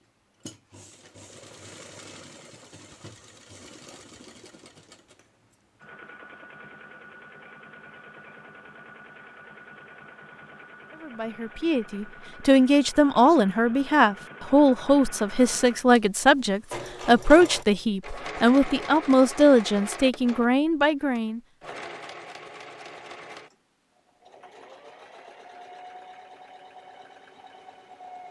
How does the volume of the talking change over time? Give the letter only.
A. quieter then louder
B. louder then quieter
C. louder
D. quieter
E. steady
E.